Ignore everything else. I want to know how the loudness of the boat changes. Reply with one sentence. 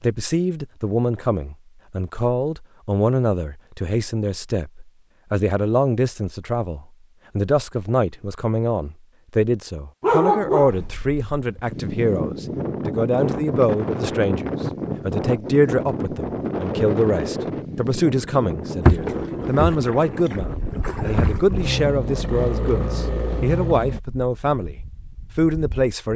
The loudness of the boat goes down, then up.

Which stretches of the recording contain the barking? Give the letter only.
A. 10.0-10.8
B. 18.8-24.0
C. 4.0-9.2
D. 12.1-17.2
A.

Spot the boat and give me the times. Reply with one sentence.
The boat can be heard from 18.8 to 24.0 s.